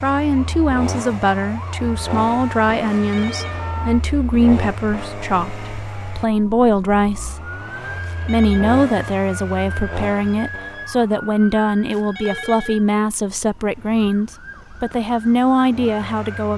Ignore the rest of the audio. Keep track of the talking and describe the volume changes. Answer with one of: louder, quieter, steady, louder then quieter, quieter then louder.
steady.